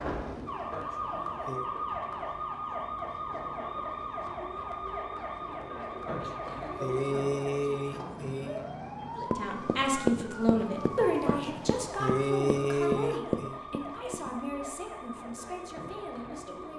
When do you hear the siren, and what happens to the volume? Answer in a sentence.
The siren can be heard from 0.0 to 16.7 s, getting quieter.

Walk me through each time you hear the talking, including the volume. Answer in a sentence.
The talking can be heard from 9.2 to 16.7 s, getting quieter.